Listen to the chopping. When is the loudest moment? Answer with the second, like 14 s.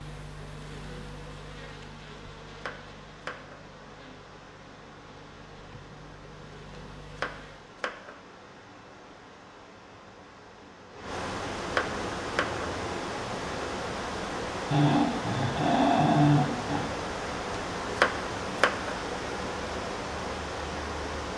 18 s.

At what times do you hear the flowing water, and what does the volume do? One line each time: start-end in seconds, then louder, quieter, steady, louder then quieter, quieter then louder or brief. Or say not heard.
0.0-21.3 louder.